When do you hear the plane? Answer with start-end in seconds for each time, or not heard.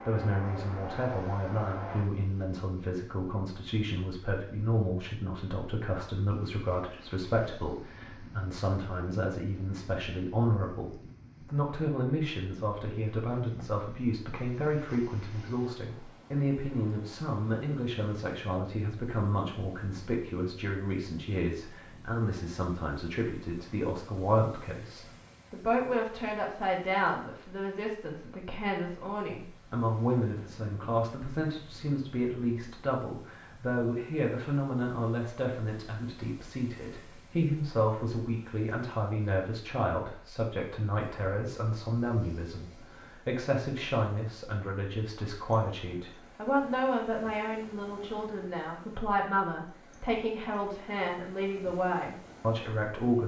0.0-2.0.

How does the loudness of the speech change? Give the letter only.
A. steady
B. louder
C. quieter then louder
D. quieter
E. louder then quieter
A.